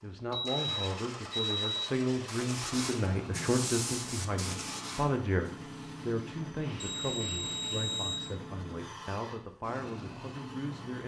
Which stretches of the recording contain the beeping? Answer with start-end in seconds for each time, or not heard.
0.3-1.9, 6.8-8.2.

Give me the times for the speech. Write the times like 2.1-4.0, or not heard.
0.0-11.0.